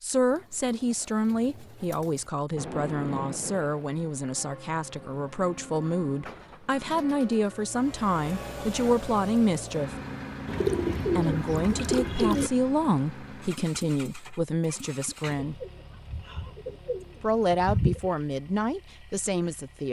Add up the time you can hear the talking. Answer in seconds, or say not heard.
17 s.